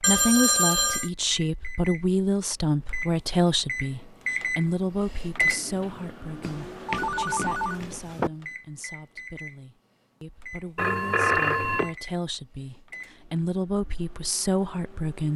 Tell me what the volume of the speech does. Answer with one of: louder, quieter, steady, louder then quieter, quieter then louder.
quieter then louder.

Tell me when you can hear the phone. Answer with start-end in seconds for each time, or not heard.
0.0-1.1, 6.4-8.3, 10.8-11.9.